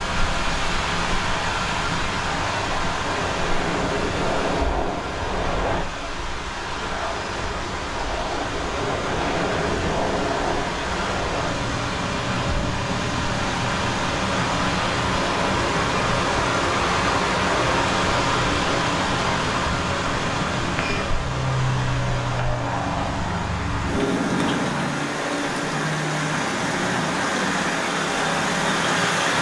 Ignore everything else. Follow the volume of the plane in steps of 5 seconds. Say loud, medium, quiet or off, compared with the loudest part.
loud, loud, loud, medium, loud, loud.